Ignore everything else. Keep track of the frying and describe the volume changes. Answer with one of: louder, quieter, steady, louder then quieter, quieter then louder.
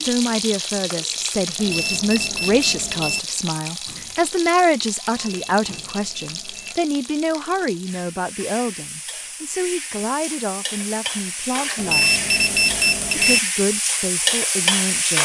quieter then louder.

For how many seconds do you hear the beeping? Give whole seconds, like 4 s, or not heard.
5 s.